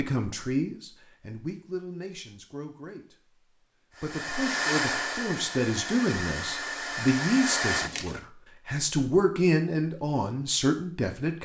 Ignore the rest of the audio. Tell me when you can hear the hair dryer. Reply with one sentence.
The hair dryer can be heard from 3.9 to 8.2 s.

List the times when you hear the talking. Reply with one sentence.
The talking can be heard from 0.0 to 3.4 s and from 4.0 to 11.4 s.